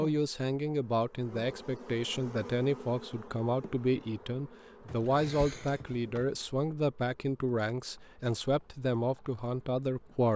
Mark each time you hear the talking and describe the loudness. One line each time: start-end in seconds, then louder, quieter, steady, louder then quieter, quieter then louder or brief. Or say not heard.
0.0-10.3 steady.